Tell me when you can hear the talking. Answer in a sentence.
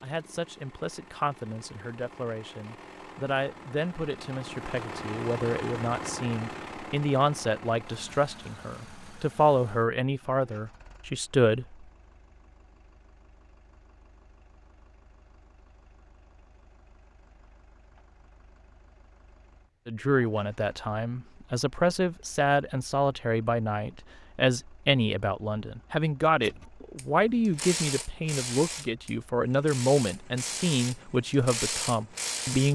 The talking can be heard from 0.0 to 11.8 s and from 19.9 to 32.6 s.